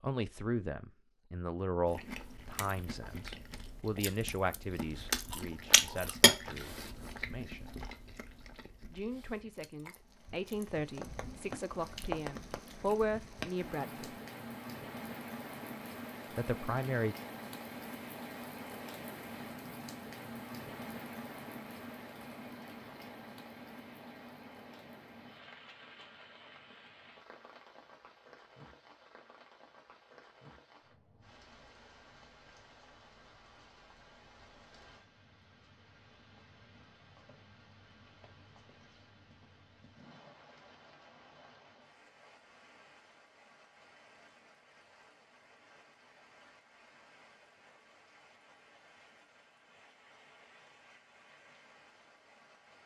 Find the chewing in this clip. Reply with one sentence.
The chewing can be heard from 1.9 to 12.9 s.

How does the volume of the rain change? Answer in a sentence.
The volume of the rain goes down.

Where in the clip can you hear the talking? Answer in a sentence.
The talking can be heard from 0.0 to 7.8 s, from 8.9 to 14.1 s and from 16.4 to 17.1 s.